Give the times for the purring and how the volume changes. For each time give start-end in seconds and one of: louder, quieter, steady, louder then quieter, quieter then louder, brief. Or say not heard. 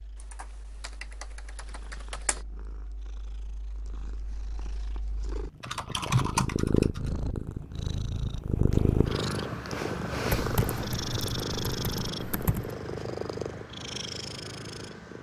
0.0-15.1 louder then quieter.